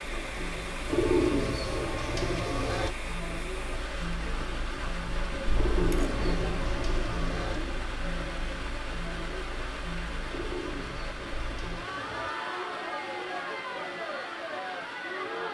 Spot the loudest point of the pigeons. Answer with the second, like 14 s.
1 s.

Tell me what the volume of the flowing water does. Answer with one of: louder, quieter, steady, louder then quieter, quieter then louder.
steady.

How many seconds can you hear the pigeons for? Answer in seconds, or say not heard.
6 s.